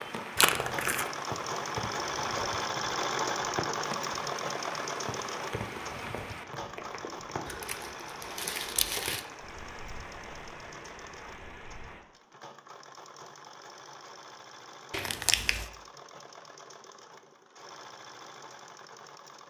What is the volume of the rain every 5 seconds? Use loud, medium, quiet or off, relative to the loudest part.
loud, loud, medium, off.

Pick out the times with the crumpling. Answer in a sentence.
The crumpling can be heard from 0.3 to 1.1 s, from 7.5 to 9.2 s and from 14.9 to 15.7 s.